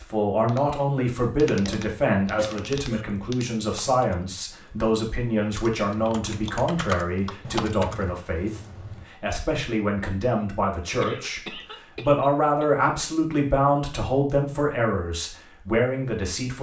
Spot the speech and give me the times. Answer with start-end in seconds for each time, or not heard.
0.0-16.5.